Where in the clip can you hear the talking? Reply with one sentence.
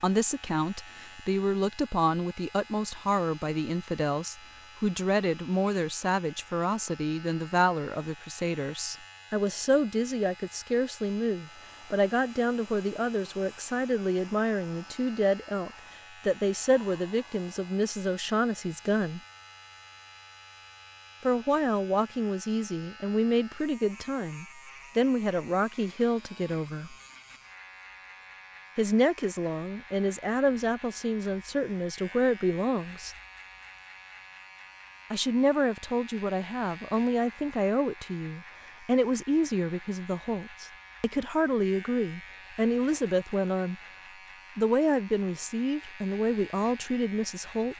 You can hear the talking from 0.0 to 19.2 s, from 21.2 to 26.9 s, from 28.8 to 33.1 s, from 35.1 to 43.8 s and from 44.5 to 47.7 s.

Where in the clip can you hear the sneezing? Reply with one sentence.
You can't hear the sneezing here.